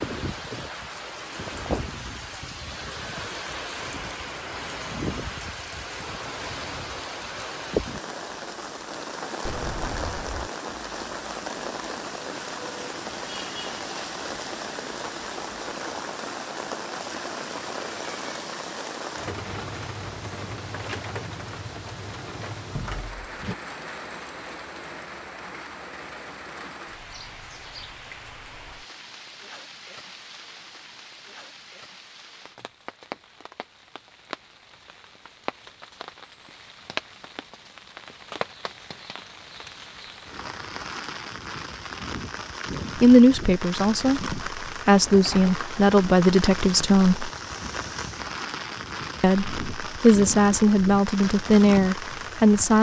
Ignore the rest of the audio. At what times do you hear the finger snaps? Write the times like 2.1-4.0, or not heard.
not heard.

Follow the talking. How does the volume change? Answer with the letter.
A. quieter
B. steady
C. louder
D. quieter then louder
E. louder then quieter
B.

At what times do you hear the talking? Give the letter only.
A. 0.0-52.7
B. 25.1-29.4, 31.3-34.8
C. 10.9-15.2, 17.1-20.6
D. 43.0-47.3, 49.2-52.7
D.